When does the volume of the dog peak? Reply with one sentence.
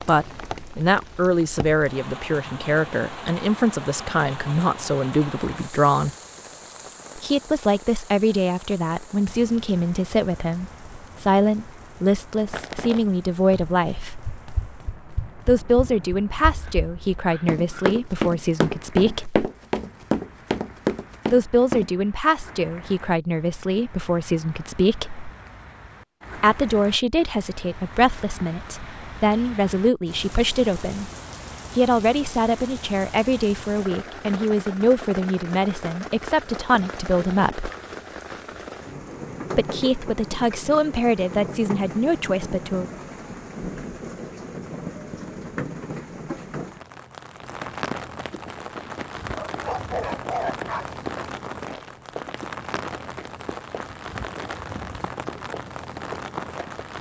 The volume of the dog peaks at 50 seconds.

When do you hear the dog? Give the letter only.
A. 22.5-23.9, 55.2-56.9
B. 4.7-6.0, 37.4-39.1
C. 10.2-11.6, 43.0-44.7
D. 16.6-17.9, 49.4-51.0
D.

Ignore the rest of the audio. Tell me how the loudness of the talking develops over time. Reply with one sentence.
The loudness of the talking stays about the same.